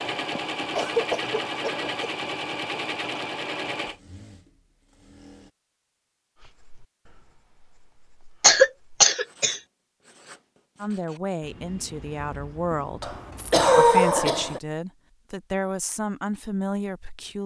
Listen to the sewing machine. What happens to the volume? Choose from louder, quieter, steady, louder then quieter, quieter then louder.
quieter.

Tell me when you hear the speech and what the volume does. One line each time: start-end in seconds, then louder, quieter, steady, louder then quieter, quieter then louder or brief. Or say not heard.
10.8-17.4 steady.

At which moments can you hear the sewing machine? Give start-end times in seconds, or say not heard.
0.0-5.5.